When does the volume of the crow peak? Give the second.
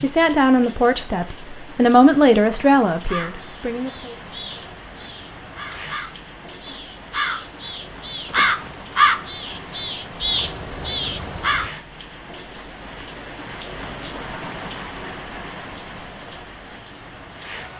9 s.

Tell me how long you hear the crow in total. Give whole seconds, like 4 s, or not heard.
9 s.